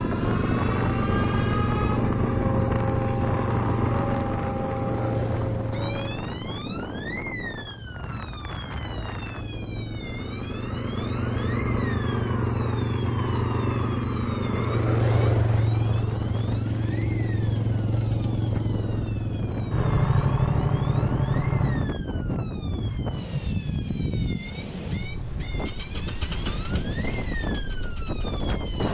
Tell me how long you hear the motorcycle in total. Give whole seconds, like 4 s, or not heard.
26 s.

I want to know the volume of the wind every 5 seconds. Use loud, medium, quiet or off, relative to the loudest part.
loud, medium, medium, medium, loud, loud.